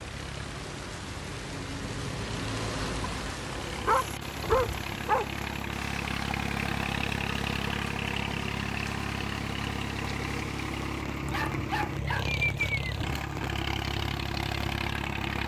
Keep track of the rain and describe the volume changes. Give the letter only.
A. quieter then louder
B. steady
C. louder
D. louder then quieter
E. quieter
E.